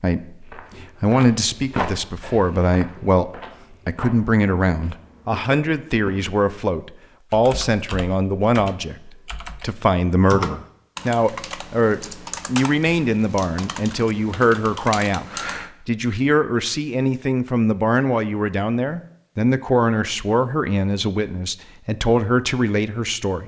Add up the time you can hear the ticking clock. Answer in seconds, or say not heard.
not heard.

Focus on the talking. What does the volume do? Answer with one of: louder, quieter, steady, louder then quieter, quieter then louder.
steady.